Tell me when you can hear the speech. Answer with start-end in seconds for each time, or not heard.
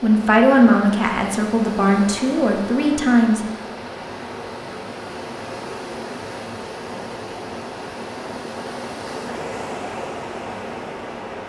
0.0-3.4.